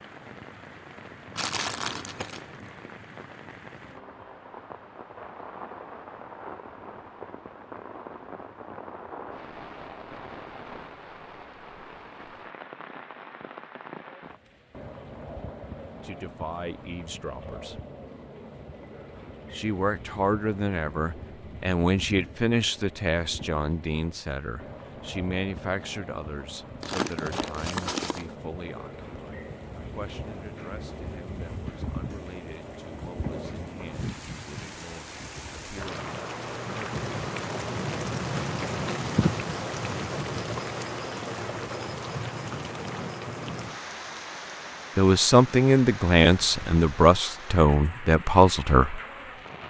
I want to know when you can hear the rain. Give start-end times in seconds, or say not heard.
0.0-49.6.